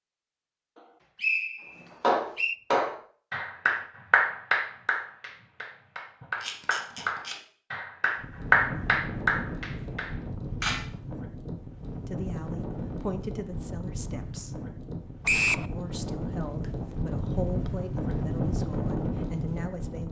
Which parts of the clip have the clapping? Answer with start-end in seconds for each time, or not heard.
2.0-10.1.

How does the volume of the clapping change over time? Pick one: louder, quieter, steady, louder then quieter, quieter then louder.
quieter then louder.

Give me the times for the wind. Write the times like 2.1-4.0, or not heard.
8.2-20.0.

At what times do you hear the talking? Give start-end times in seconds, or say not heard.
12.1-14.6, 15.7-20.0.